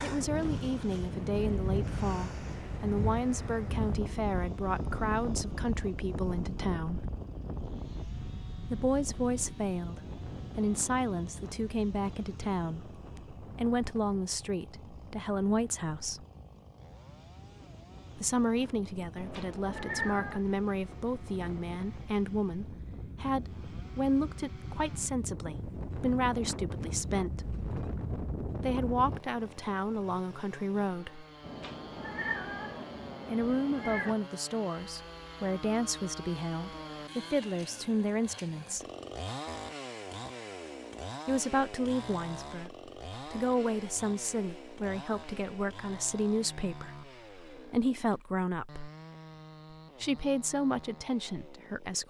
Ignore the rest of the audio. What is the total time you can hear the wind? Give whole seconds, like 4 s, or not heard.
29 s.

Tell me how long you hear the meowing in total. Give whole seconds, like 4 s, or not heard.
4 s.